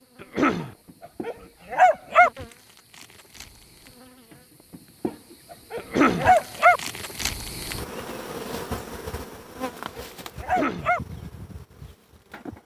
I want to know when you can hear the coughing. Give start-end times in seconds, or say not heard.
0.2-0.8, 5.8-6.3, 10.4-10.9.